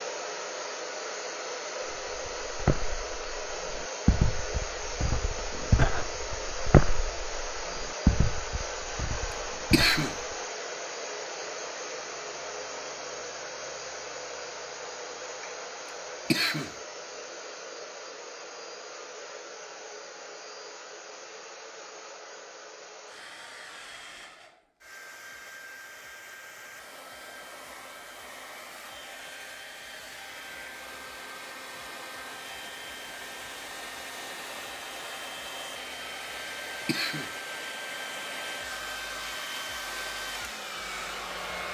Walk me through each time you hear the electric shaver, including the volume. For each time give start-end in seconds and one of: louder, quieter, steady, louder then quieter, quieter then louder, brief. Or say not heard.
not heard.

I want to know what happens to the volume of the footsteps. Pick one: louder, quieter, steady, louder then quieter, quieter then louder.
louder then quieter.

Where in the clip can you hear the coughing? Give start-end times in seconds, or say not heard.
9.7-10.2, 16.3-16.8, 36.9-37.3.